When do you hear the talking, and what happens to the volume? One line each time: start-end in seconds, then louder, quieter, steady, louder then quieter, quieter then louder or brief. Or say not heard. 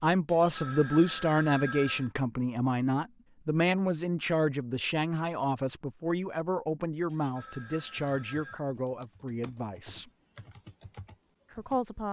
0.0-10.1 quieter
11.5-12.0 brief.